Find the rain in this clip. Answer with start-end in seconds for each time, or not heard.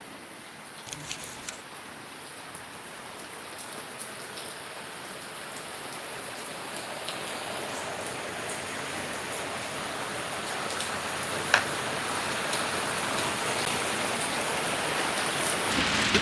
0.0-16.1.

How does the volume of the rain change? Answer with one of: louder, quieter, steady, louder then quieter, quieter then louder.
louder.